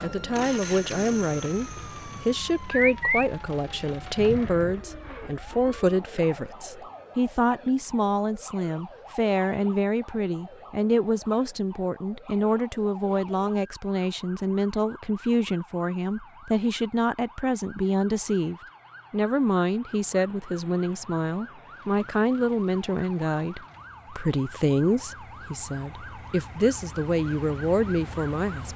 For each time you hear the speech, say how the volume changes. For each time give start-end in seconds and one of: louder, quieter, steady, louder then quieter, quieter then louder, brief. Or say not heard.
0.0-28.7 steady.